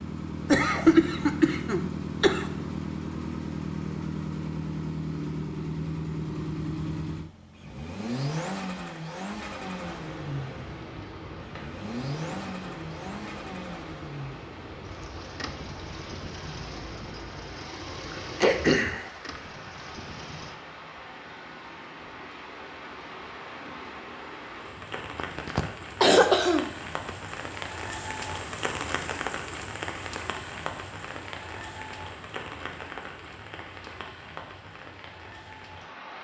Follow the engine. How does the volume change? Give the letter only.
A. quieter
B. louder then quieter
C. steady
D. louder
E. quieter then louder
A.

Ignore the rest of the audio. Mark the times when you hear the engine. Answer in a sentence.
You can hear the engine from 0.0 to 20.6 s.